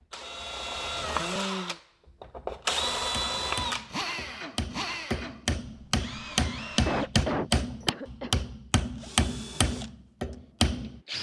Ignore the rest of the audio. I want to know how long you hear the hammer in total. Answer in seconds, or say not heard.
8 s.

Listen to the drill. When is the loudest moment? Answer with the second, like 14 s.
3 s.